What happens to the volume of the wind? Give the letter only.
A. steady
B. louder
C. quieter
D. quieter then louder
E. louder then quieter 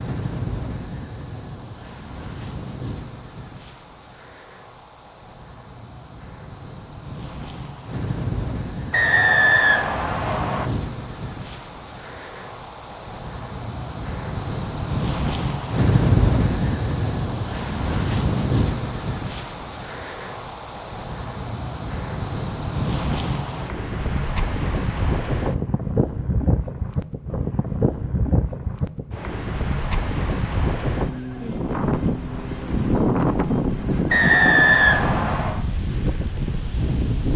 B.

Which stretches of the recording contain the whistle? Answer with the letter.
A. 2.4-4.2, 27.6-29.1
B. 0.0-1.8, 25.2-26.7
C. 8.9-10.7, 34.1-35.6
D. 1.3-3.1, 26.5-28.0
C.